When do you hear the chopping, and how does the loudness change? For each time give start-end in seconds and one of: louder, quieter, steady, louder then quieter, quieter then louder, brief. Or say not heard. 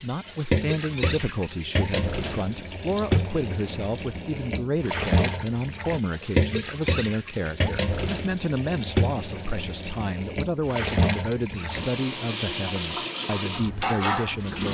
not heard.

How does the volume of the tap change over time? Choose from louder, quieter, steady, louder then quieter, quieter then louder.
steady.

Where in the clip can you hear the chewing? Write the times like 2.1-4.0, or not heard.
not heard.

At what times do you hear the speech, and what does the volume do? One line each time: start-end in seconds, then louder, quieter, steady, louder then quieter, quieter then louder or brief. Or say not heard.
0.0-14.7 steady.